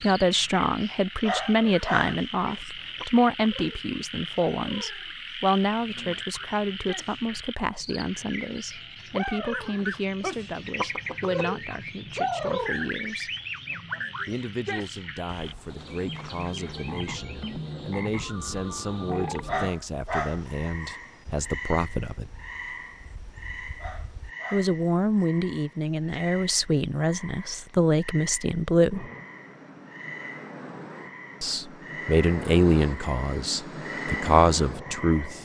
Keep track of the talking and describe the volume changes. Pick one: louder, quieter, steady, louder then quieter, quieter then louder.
quieter then louder.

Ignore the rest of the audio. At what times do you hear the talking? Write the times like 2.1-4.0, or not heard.
0.0-13.3, 14.2-22.3, 24.5-29.1, 31.4-35.3.